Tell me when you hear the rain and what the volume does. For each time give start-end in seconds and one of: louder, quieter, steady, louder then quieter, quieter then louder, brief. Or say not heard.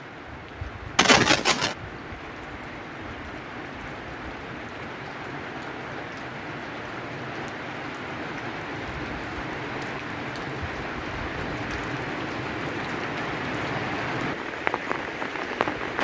0.0-16.0 louder.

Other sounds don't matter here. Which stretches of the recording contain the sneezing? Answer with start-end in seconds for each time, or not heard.
0.9-1.8.